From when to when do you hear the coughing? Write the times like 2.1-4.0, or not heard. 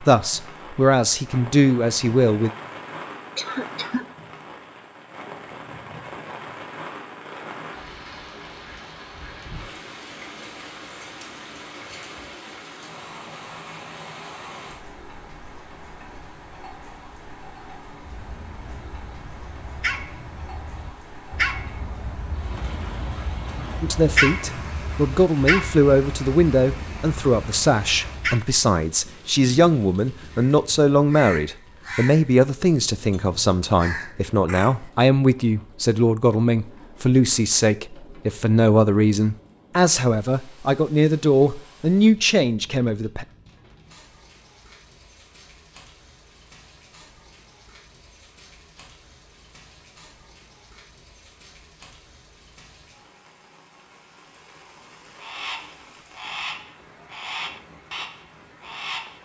3.4-4.0.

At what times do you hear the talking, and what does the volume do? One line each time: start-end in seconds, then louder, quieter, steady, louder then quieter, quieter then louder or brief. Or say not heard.
0.0-2.5 brief
23.8-43.2 steady.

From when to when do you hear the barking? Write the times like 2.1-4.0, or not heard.
18.0-28.4.